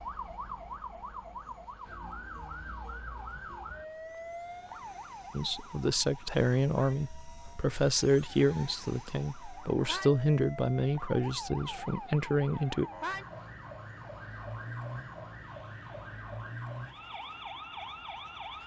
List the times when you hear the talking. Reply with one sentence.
You can hear the talking from 5.3 to 12.9 s.